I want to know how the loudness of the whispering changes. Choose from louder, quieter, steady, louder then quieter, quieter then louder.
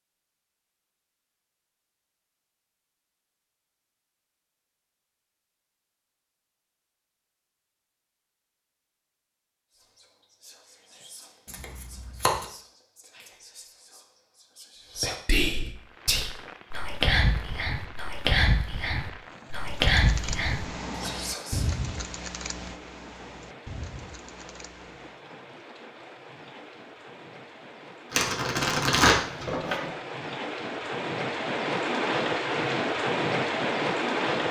louder.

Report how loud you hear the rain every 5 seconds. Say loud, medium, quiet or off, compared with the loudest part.
off, off, off, quiet, quiet, quiet, loud.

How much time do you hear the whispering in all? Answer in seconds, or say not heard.
12 s.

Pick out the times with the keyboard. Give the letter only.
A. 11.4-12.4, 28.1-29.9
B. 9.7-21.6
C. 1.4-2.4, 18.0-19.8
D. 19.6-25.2
D.